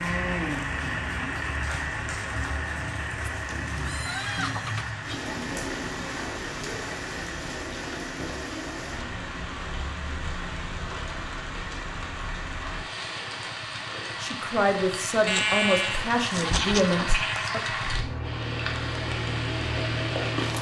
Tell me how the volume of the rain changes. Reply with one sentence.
The loudness of the rain stays about the same.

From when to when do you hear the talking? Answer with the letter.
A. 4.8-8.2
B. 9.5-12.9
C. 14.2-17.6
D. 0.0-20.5
C.